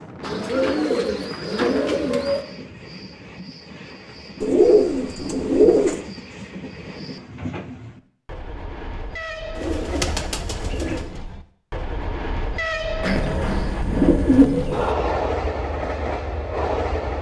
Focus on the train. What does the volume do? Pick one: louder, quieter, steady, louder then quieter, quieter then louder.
louder.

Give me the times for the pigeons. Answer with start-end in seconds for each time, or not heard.
0.2-2.5, 4.4-6.0, 9.6-11.1, 13.0-14.9.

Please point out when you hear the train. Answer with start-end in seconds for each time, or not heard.
0.0-17.1.